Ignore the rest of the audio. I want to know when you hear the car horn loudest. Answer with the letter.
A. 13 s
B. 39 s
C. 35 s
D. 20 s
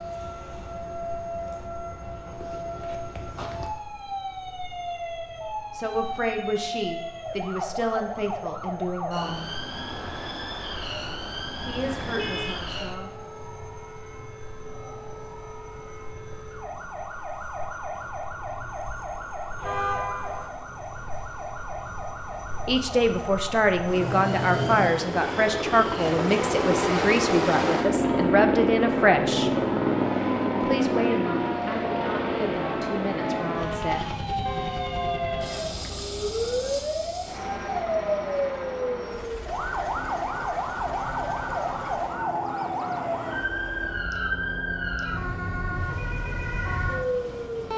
D.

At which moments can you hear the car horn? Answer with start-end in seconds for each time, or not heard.
11.7-12.6, 19.6-20.5, 34.5-36.0.